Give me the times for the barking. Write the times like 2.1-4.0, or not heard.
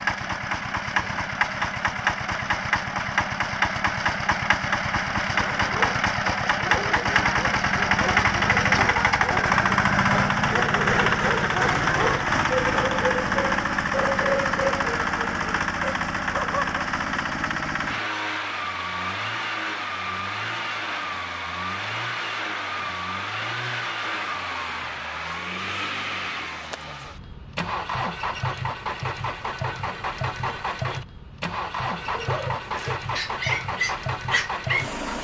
5.3-16.9, 31.9-35.0.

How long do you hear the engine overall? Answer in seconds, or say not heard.
35 s.